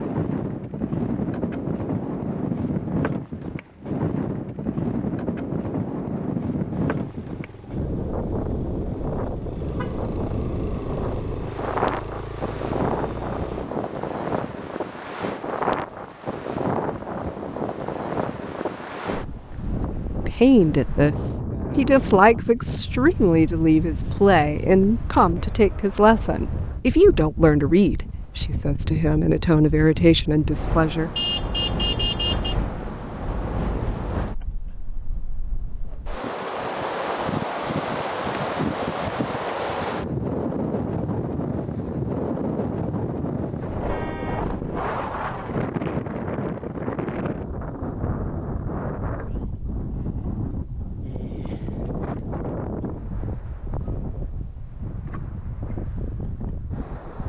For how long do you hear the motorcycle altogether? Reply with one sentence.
You can hear the motorcycle for 7 seconds altogether.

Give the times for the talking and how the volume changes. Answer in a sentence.
The talking can be heard from 20.2 to 31.1 s, at a steady volume.